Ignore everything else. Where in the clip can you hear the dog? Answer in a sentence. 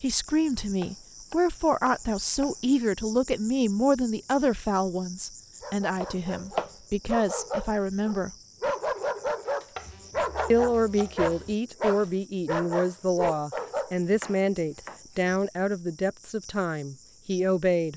You can hear the dog from 5.6 to 13.9 s.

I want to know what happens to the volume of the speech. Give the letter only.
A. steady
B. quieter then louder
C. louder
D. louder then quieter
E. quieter
A.